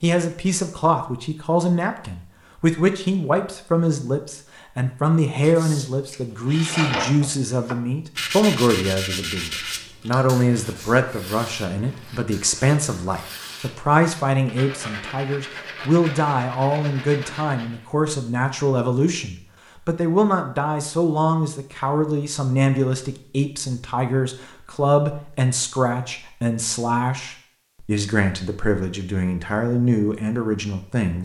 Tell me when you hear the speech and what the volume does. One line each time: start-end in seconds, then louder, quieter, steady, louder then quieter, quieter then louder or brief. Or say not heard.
0.0-31.2 steady.